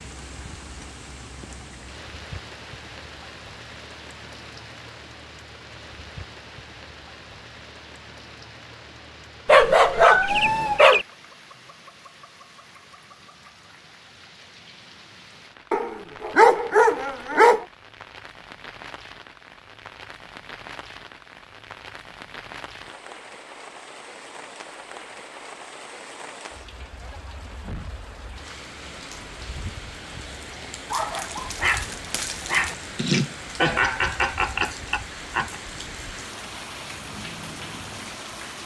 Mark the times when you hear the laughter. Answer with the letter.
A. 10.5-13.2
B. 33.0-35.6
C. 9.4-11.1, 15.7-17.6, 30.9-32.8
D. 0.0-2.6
B.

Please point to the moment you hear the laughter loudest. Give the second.
34 s.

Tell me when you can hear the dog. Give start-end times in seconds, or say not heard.
9.4-11.1, 15.7-17.6, 30.9-32.8.